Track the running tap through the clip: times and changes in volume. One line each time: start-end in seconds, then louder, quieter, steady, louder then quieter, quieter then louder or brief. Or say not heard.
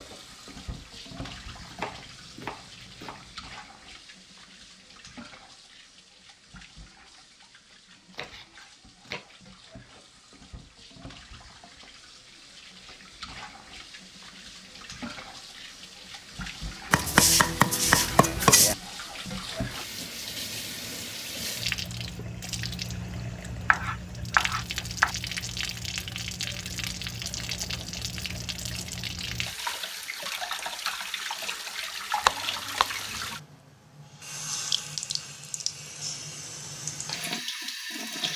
0.0-38.3 louder.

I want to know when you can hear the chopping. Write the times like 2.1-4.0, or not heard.
1.2-3.4, 8.1-9.5, 16.9-18.8, 23.7-25.1, 32.2-33.2.